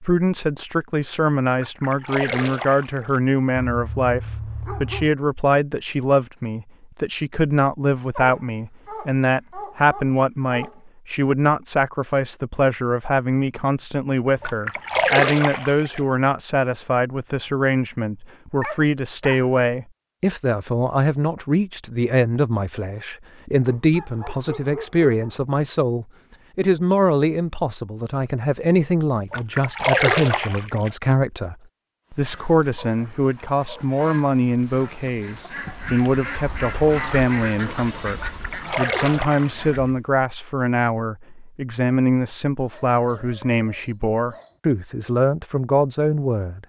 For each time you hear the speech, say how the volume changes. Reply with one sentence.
You can hear the speech from 0.0 to 46.6 s, at a steady volume.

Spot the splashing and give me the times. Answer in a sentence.
The splashing can be heard from 1.6 to 3.2 s, from 14.3 to 16.0 s, from 29.2 to 30.9 s and from 38.1 to 39.8 s.